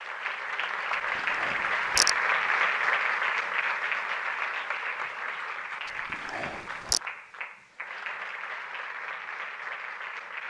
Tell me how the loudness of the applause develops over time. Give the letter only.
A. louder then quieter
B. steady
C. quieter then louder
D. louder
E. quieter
E.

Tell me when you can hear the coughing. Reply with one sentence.
You can hear the coughing from 0.9 to 2.1 s and from 5.8 to 7.0 s.